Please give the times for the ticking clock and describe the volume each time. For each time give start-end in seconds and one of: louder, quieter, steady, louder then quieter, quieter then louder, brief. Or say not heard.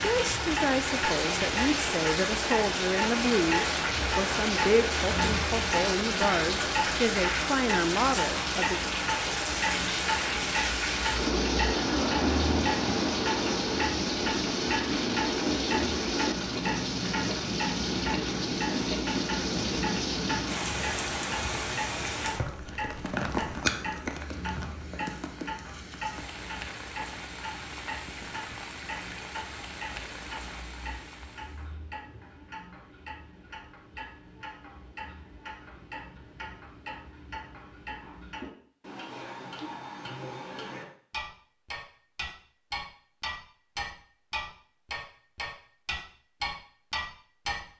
0.0-47.6 quieter then louder.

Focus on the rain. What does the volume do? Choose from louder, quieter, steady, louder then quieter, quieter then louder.
quieter.